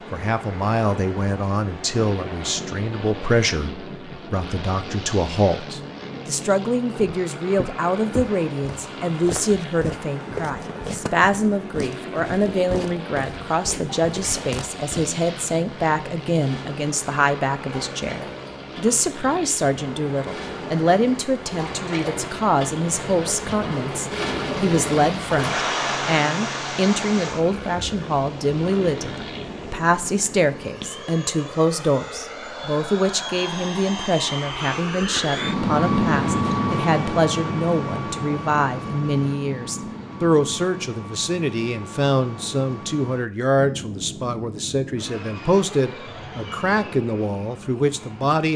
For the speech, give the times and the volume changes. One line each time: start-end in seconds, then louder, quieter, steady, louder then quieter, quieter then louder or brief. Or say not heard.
0.1-48.5 steady.